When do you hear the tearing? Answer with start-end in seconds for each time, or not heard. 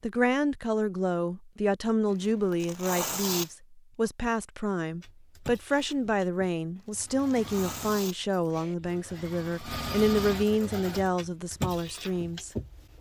2.0-3.5, 6.8-8.8.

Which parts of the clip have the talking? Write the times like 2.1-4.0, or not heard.
0.0-12.9.